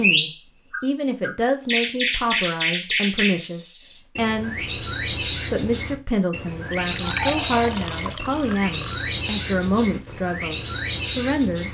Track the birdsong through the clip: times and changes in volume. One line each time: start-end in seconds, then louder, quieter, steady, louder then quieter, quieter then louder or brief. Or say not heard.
0.0-11.6 steady.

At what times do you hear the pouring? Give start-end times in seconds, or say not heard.
6.7-9.1.